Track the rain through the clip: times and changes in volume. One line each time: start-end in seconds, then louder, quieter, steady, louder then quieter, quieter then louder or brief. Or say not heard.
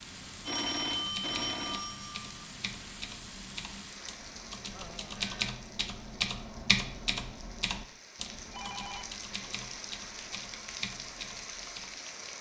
0.0-12.3 quieter then louder.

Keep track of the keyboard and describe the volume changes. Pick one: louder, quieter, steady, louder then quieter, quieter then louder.
louder then quieter.